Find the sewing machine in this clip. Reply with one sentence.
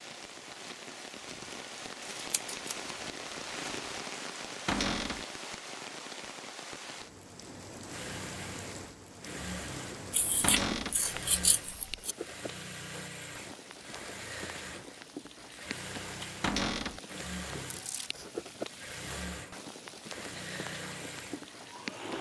You can hear the sewing machine from 7.8 to 22.1 s.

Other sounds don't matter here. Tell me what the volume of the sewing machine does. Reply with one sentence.
The loudness of the sewing machine stays about the same.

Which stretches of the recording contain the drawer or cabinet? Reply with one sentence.
The drawer or cabinet can be heard from 4.7 to 5.2 s, from 10.4 to 11.0 s and from 16.4 to 17.0 s.